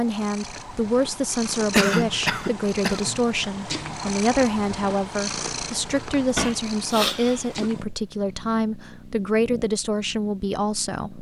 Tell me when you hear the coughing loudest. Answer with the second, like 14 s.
2 s.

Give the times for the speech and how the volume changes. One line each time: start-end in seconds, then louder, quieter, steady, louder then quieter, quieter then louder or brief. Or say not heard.
0.0-11.1 steady.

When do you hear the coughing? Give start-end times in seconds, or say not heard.
1.7-3.2, 6.3-7.7.